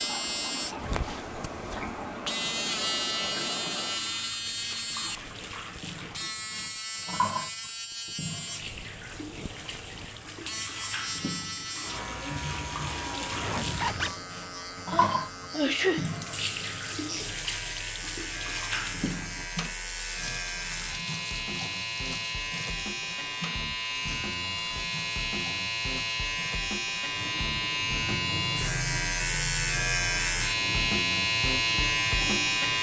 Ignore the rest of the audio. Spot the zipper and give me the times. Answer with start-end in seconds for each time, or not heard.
13.3-14.2.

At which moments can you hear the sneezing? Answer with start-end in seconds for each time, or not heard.
14.9-16.1.